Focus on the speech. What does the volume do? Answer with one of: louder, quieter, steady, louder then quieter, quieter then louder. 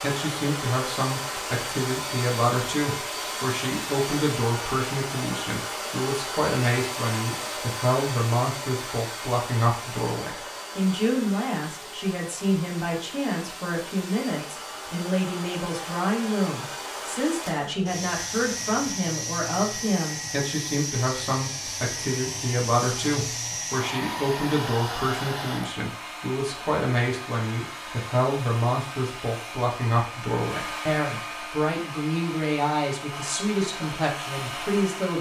steady.